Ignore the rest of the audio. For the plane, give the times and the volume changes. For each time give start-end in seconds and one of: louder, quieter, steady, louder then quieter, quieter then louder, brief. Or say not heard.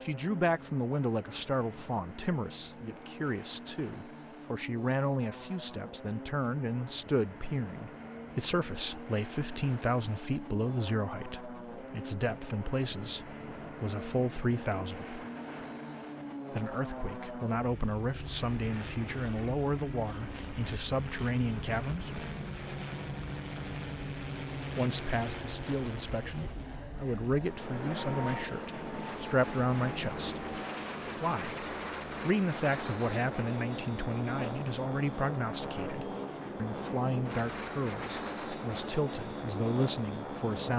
0.0-40.7 louder.